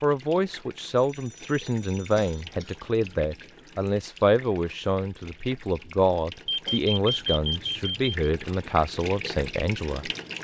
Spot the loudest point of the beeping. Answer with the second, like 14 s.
7 s.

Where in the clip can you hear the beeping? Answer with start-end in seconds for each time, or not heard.
0.9-2.5, 6.5-8.2.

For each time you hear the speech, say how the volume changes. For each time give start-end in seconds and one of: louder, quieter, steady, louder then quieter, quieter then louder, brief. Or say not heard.
0.0-10.4 steady.